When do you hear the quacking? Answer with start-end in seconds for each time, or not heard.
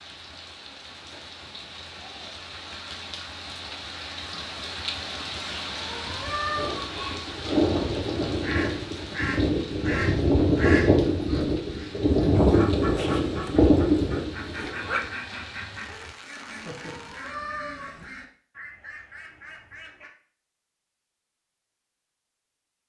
8.4-20.1.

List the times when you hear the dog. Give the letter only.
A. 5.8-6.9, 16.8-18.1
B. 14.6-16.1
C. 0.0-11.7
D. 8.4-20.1
B.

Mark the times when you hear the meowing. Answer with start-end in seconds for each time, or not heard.
5.8-6.9, 16.8-18.1.